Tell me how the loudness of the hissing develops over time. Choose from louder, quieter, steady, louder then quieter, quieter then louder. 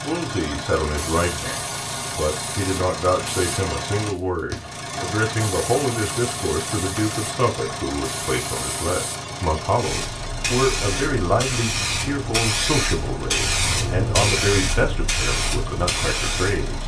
louder.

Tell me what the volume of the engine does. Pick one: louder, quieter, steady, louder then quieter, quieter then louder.
quieter.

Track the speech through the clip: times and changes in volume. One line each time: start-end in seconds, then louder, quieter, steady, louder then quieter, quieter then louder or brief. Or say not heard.
0.0-16.8 steady.